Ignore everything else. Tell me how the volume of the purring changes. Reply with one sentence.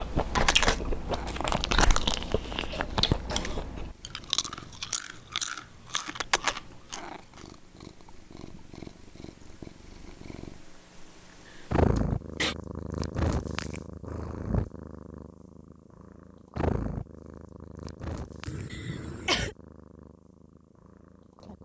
The loudness of the purring goes up, then down.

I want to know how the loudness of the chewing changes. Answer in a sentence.
The loudness of the chewing goes down.